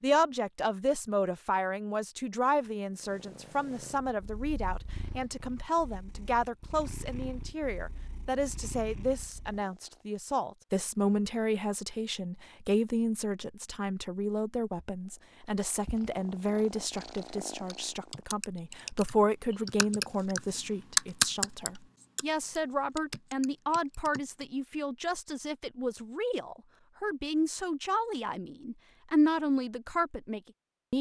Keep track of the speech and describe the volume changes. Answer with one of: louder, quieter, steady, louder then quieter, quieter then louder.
steady.